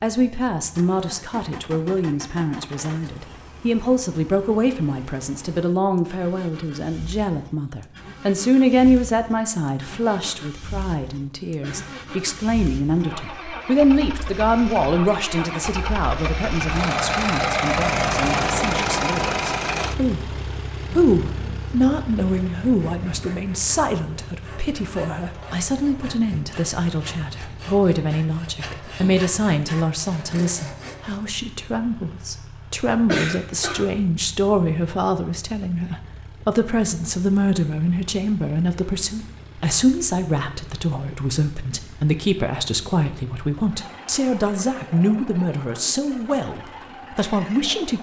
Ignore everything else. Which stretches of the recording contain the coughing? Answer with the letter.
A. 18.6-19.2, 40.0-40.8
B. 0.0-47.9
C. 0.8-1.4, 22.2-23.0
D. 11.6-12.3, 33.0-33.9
D.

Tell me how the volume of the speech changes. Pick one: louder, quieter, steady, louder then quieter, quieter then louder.
steady.